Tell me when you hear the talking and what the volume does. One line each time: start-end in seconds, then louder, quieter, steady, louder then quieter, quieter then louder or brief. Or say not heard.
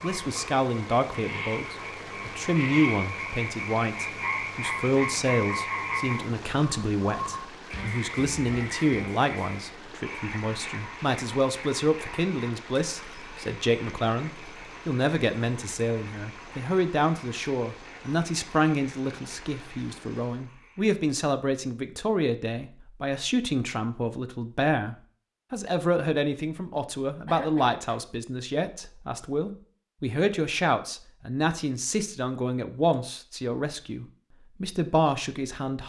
0.0-35.8 steady.